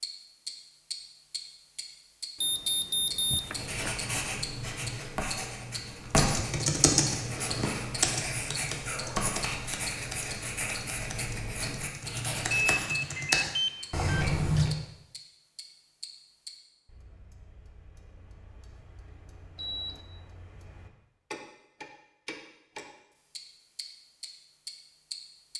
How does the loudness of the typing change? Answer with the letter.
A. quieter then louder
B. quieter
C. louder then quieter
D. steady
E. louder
A.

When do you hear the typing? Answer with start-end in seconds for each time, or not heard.
6.2-14.7.